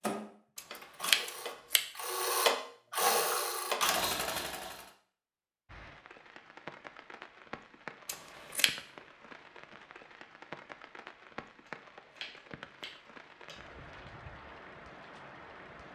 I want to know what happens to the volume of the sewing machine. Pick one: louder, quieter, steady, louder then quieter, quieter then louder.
louder.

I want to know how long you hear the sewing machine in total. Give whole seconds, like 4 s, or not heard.
5 s.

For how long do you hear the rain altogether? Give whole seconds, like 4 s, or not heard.
10 s.